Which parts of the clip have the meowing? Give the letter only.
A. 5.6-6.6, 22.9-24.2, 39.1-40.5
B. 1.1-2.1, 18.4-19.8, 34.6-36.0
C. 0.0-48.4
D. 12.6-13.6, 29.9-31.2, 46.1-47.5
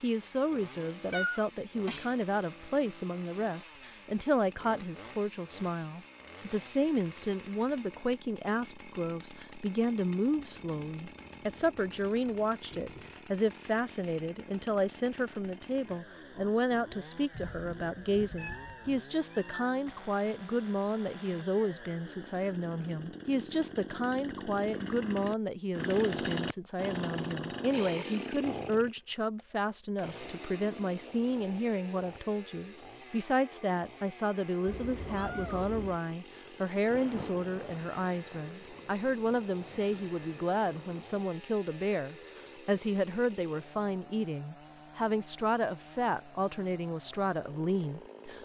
B.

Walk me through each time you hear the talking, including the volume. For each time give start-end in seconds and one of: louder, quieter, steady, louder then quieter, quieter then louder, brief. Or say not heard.
0.0-48.4 steady.